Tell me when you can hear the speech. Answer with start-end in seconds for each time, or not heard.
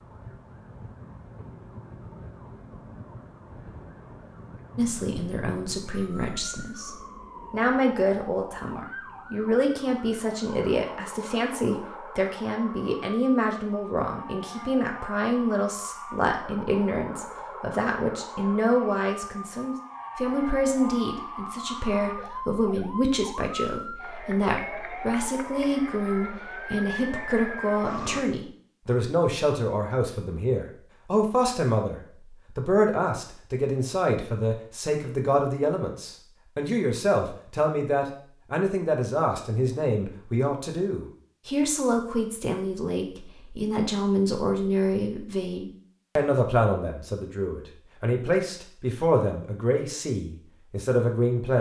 4.8-51.5.